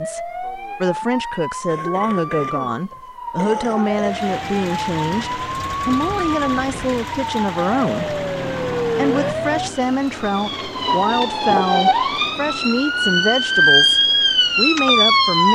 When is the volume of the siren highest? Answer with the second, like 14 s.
14 s.